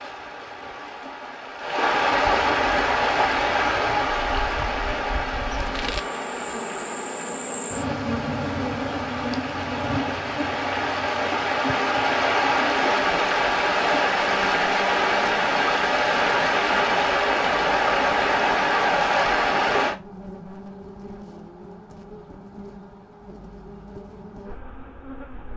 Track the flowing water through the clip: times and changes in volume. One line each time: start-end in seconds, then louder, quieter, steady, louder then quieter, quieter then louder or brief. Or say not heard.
0.0-19.9 quieter then louder.